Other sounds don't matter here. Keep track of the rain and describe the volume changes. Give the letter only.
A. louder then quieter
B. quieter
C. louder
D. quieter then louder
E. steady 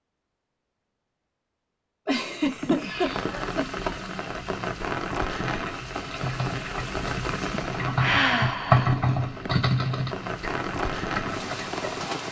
D.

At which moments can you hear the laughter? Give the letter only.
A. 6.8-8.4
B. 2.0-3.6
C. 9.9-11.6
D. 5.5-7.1
B.